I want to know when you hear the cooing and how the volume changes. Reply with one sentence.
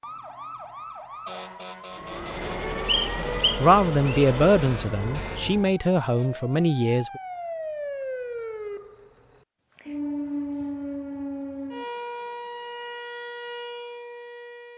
You can't hear the cooing here.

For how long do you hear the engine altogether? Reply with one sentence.
You can hear the engine for 4 seconds altogether.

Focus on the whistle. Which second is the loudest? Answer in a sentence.
The loudest moment of the whistle is at 3 seconds.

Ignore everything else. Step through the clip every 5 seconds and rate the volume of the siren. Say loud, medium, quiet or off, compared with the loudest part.
medium, loud, loud.